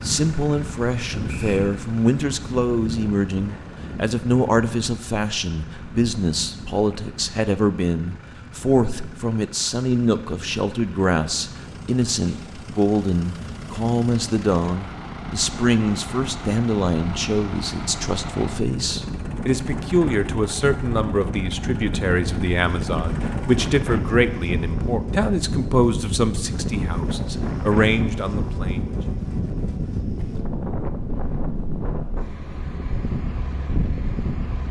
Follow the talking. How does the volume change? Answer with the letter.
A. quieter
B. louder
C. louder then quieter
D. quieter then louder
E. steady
E.